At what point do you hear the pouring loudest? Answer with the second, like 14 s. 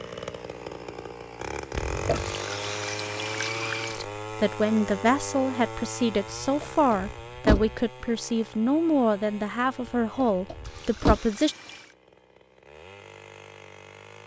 4 s.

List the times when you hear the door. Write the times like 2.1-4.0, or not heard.
1.7-2.4, 6.2-7.8, 9.8-11.2.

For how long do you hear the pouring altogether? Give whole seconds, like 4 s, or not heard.
3 s.